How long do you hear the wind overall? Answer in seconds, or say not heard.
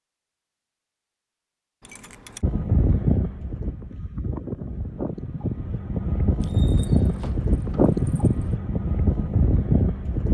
8 s.